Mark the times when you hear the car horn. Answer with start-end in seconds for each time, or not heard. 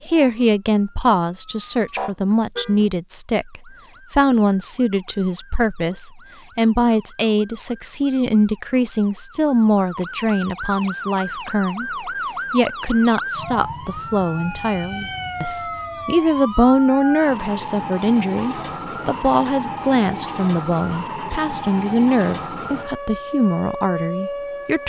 1.9-2.8.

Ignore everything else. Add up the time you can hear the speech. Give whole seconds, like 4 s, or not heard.
25 s.